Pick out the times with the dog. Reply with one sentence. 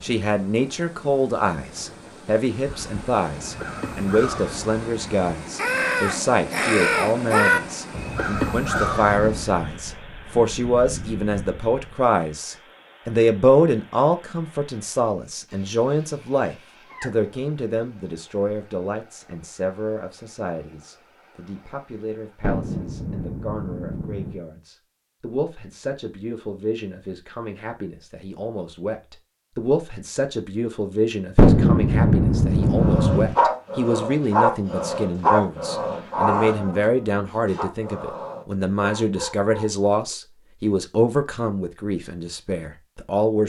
You can hear the dog from 32.6 to 40.1 s.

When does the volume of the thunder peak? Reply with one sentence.
The loudest moment of the thunder is at 32 seconds.